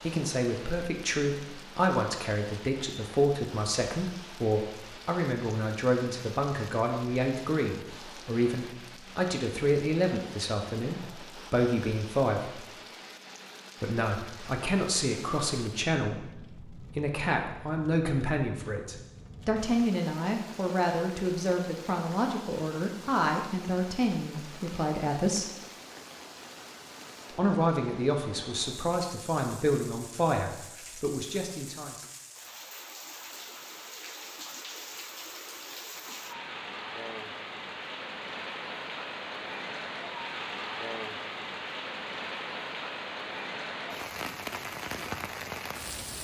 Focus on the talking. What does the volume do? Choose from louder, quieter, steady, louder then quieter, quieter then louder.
steady.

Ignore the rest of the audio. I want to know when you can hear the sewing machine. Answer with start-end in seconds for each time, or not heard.
not heard.